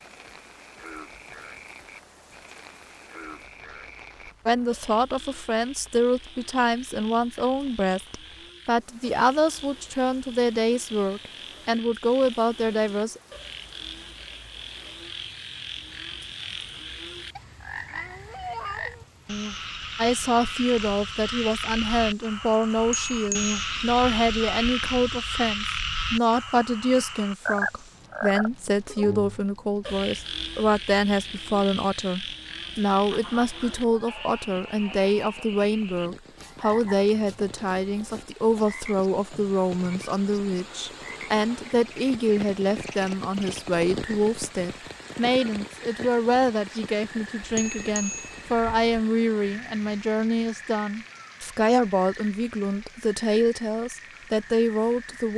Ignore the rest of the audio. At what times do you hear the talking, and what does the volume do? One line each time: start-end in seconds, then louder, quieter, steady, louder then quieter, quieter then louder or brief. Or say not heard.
4.5-13.2 steady
19.9-55.3 steady.